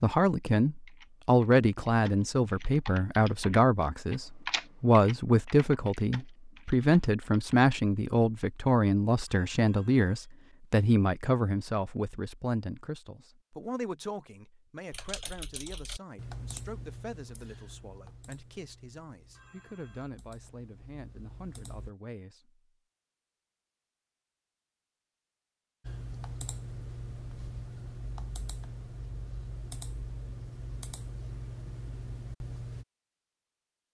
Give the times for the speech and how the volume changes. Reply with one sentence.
You can hear the speech from 0.0 to 22.6 s, getting quieter.